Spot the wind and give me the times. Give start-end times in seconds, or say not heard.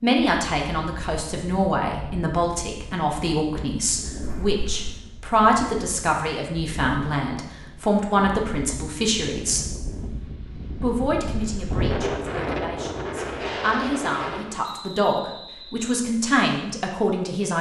0.1-14.7.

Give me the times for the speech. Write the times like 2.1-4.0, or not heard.
0.0-9.7, 10.8-17.5.